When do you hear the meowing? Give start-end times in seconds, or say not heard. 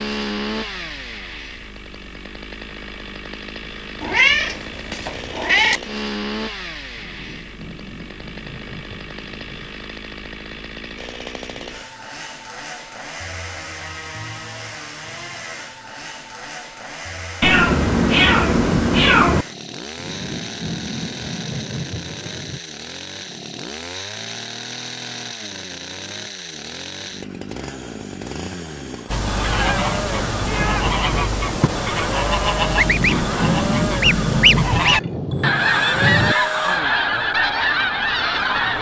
4.0-5.8, 17.4-19.4, 30.4-31.9.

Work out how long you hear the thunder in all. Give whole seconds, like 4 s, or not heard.
9 s.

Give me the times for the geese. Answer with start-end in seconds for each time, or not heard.
29.1-38.7.